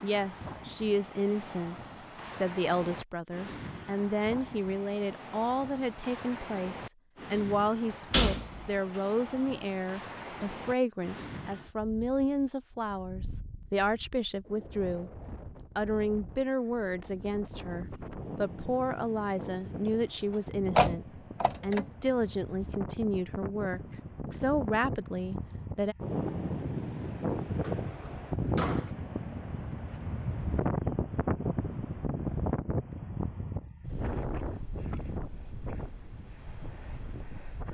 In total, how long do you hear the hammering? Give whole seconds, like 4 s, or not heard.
not heard.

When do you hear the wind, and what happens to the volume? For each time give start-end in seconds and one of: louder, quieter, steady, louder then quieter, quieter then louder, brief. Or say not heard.
0.0-37.6 louder.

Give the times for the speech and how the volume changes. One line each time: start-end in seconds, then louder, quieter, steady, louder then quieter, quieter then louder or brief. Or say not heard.
0.0-25.9 steady.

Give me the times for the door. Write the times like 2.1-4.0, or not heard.
8.1-8.7, 20.8-21.9, 27.6-28.9.